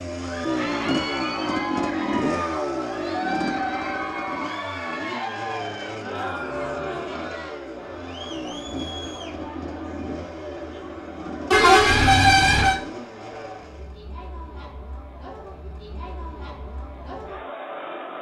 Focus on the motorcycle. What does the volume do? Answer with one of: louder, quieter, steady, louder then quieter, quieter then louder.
quieter.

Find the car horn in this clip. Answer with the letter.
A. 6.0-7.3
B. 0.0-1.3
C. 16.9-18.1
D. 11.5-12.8
D.